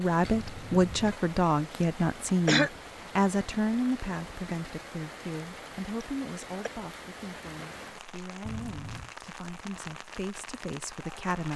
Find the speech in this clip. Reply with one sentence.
You can hear the speech from 0.0 to 11.5 s.